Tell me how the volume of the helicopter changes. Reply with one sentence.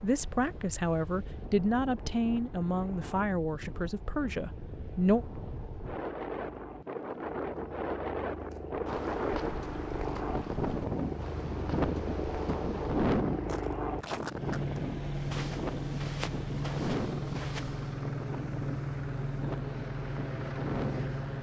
The volume of the helicopter goes up.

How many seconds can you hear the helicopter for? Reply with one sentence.
You can hear the helicopter for 21 seconds altogether.